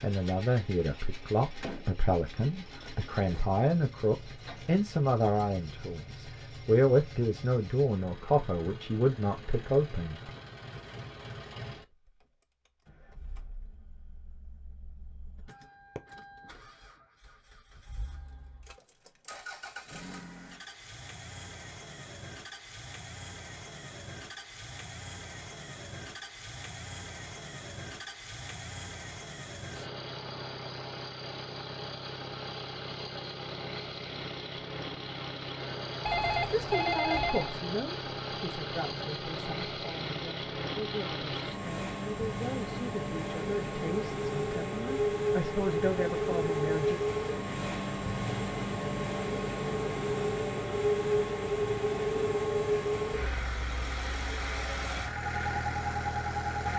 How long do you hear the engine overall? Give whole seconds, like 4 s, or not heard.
57 s.